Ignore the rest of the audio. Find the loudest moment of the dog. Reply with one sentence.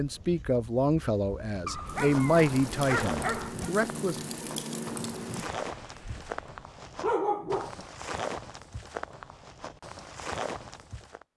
The volume of the dog peaks at 7 seconds.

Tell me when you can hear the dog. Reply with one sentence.
You can hear the dog from 1.6 to 3.7 s and from 7.0 to 7.8 s.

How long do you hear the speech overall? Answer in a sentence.
The speech can be heard for 4 seconds in total.